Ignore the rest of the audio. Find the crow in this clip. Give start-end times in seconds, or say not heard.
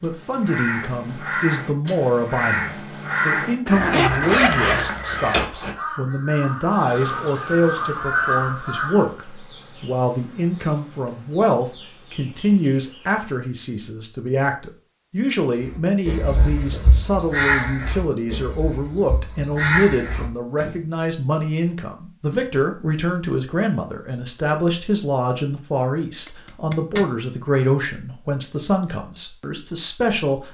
0.0-9.0, 15.7-20.8.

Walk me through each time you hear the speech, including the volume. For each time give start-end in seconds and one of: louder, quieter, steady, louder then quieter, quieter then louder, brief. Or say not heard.
0.0-30.4 steady.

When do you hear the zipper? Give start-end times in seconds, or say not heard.
3.6-5.4, 26.2-27.1.